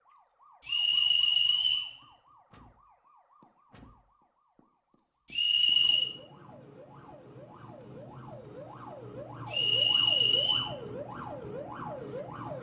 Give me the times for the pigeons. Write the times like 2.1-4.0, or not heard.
not heard.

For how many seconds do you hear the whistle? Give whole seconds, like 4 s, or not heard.
3 s.